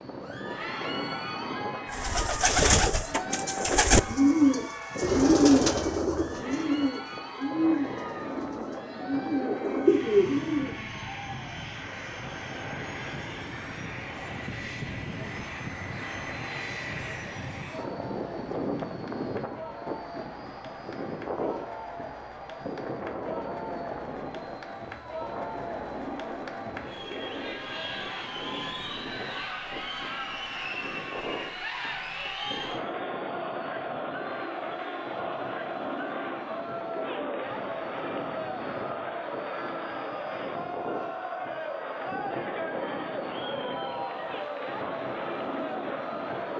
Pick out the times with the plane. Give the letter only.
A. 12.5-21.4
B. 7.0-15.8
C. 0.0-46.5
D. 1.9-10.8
C.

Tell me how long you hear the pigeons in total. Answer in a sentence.
The pigeons can be heard for 9 seconds in total.